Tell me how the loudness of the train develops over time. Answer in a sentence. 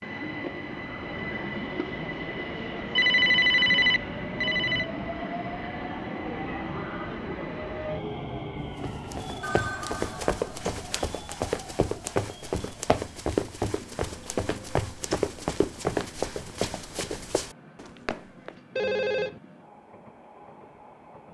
The volume of the train goes down.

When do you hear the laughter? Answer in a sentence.
The laughter can't be heard in this clip.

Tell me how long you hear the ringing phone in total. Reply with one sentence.
The ringing phone can be heard for 4 seconds in total.